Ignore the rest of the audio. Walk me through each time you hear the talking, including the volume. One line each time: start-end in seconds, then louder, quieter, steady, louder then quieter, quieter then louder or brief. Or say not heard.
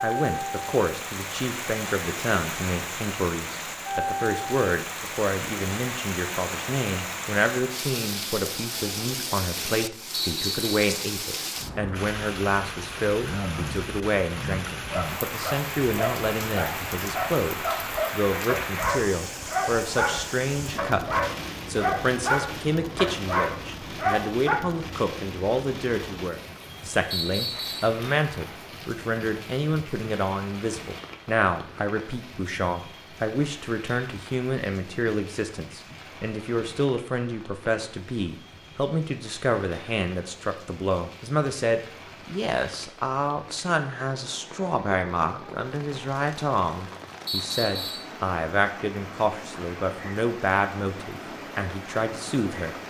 0.0-52.8 steady.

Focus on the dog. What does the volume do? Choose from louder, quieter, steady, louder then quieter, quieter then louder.
louder.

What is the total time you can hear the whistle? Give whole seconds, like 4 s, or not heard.
2 s.